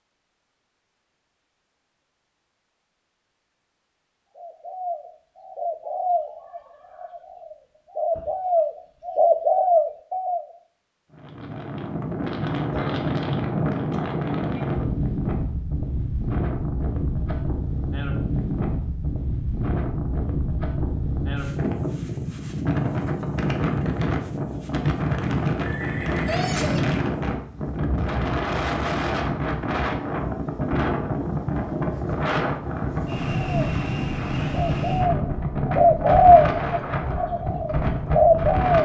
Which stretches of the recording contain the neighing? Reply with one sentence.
The neighing can be heard from 25.6 to 26.9 s.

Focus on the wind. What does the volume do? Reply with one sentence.
The volume of the wind stays about the same.